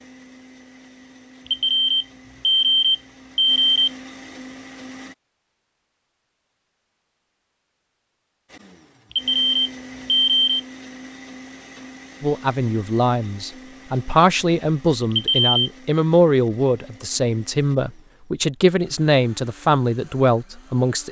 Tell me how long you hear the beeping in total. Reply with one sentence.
You can hear the beeping for 4 seconds altogether.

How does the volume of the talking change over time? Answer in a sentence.
The volume of the talking stays about the same.